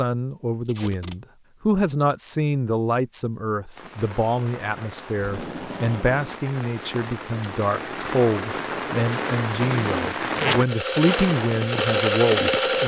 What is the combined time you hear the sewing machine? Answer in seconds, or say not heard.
2 s.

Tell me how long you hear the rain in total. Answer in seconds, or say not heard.
9 s.